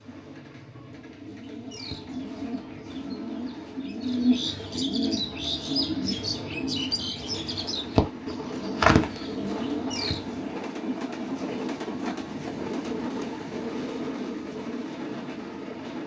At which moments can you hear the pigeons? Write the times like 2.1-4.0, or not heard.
1.2-10.4.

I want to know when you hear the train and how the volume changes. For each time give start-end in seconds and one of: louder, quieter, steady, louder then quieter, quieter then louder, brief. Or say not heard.
0.0-16.0 louder.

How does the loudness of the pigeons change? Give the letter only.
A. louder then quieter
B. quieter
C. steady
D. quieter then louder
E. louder
E.